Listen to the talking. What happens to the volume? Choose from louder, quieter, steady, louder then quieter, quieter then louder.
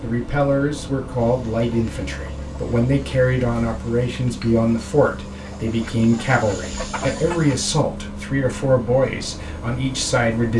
steady.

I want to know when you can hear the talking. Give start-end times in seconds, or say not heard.
0.0-10.5.